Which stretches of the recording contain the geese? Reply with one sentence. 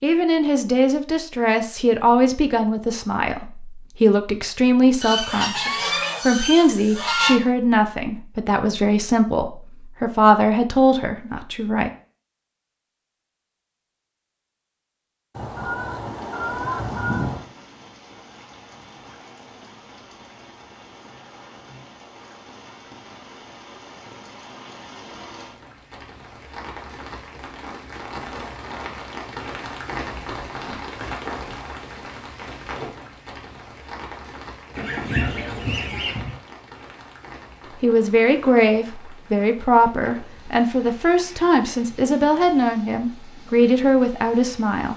The geese can be heard from 5.0 to 7.4 s, from 15.3 to 17.4 s and from 34.8 to 36.4 s.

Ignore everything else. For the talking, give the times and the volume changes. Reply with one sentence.
The talking can be heard from 0.0 to 11.9 s, at a steady volume; and from 37.8 to 44.9 s, at a steady volume.